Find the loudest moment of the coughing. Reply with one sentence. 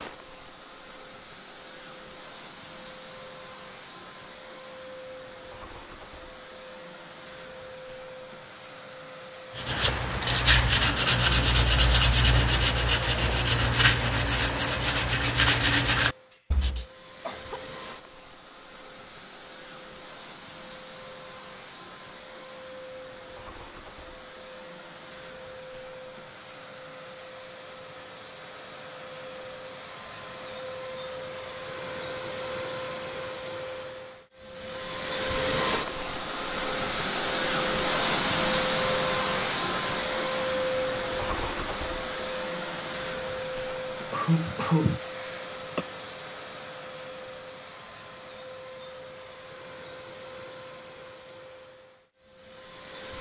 The loudest moment of the coughing is at 45 seconds.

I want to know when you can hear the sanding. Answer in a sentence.
The sanding can be heard from 9.6 to 16.9 s.